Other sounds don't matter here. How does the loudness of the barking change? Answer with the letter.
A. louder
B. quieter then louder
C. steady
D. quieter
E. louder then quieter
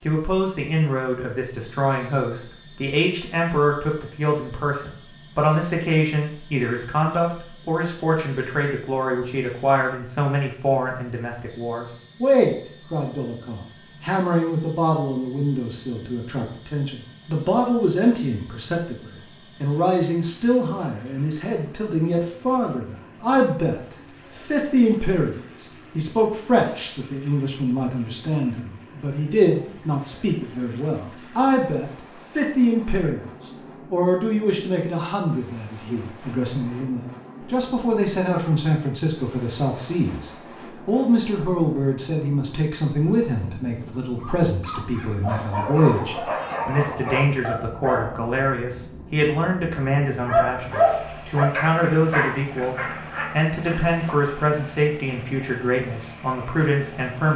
E.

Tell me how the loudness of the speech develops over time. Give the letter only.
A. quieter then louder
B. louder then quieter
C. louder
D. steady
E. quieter
D.